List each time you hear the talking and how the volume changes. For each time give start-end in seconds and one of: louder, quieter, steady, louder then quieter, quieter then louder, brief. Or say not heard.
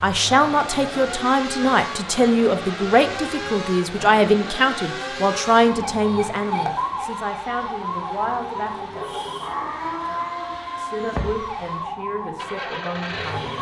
0.0-9.1 quieter
10.8-13.5 brief.